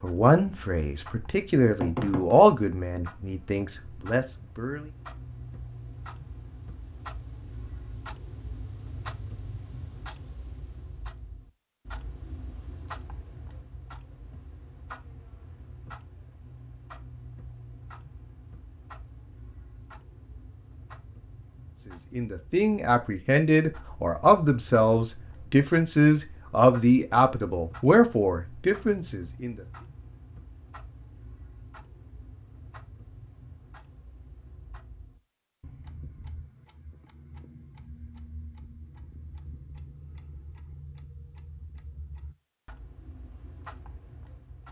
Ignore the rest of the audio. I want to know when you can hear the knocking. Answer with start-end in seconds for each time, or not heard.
1.8-2.4.